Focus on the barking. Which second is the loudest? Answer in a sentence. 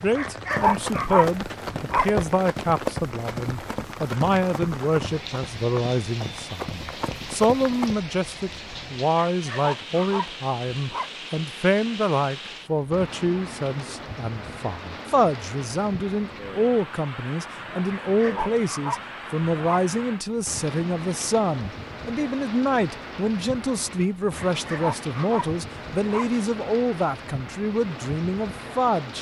The loudest moment of the barking is at 1 second.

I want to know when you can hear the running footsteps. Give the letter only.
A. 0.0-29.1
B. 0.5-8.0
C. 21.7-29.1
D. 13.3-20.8
B.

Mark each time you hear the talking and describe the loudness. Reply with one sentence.
You can hear the talking from 0.0 to 29.1 s, at a steady volume.